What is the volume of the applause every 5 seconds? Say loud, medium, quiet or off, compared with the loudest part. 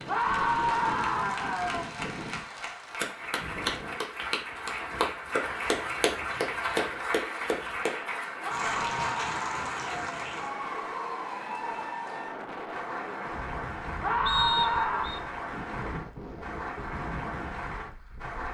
medium, loud, medium, medium.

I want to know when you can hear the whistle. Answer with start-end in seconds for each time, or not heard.
14.2-15.2.